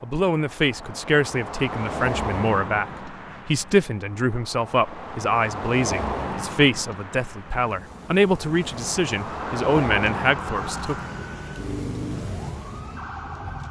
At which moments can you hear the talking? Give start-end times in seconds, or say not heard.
0.0-10.9.